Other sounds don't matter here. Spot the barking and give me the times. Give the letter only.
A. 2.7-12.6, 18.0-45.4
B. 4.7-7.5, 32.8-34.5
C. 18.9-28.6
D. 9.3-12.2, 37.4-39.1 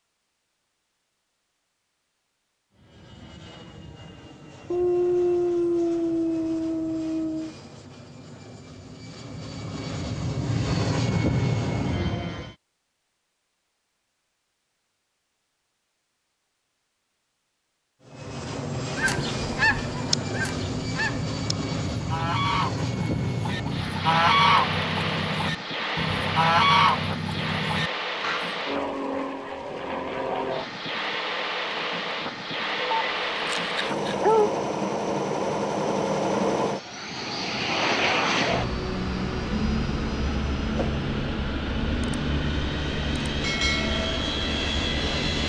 B.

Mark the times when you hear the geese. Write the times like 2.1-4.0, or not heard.
18.9-28.6.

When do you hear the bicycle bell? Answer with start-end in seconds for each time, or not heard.
not heard.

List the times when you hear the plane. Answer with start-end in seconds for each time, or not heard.
2.7-12.6, 18.0-45.4.